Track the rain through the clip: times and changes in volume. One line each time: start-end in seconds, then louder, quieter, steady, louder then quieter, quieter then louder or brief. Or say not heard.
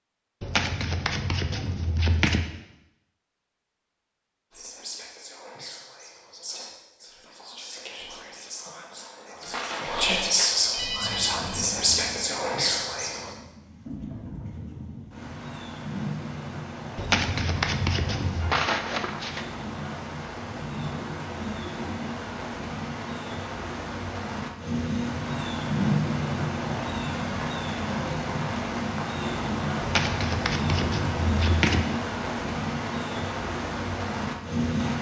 10.8-34.9 louder.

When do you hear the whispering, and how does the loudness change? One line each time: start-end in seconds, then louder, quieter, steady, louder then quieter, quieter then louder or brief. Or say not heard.
4.5-13.3 louder.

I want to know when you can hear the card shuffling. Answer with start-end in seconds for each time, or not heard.
0.4-2.4, 16.9-18.5, 29.8-31.8.